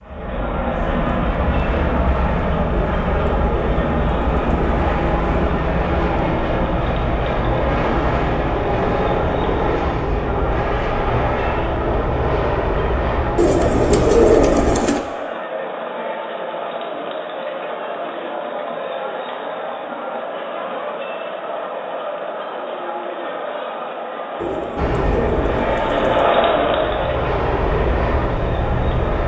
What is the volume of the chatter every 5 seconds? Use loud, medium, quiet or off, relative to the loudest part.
medium, medium, medium, medium, medium, loud.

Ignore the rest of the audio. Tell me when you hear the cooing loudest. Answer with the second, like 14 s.
14 s.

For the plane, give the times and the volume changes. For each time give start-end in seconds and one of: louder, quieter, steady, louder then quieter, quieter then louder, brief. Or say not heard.
0.0-14.8 steady
24.8-29.2 quieter then louder.